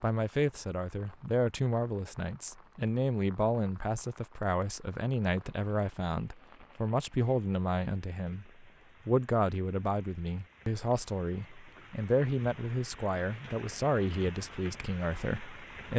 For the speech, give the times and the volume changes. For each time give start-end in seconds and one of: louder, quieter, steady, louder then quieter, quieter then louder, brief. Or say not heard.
0.0-15.9 steady.